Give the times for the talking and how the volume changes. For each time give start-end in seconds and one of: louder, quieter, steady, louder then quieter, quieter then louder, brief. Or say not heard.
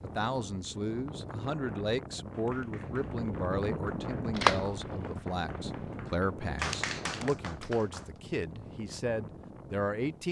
0.0-10.2 steady.